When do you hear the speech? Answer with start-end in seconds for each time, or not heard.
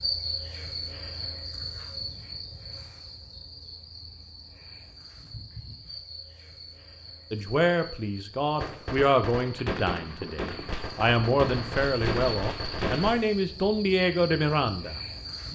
7.3-15.0.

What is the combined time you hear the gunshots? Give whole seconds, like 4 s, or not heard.
5 s.